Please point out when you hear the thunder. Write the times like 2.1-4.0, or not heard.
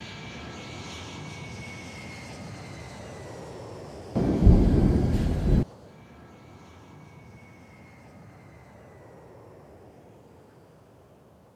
4.2-5.7.